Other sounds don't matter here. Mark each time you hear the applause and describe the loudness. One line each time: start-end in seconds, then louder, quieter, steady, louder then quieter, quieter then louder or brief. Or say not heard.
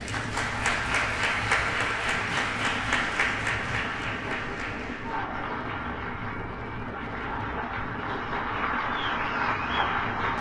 0.0-10.3 quieter then louder.